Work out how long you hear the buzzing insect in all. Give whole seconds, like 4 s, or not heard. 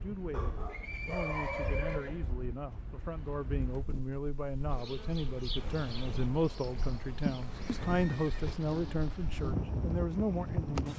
6 s.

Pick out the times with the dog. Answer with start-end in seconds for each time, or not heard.
0.3-2.1.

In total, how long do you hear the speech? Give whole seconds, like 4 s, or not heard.
11 s.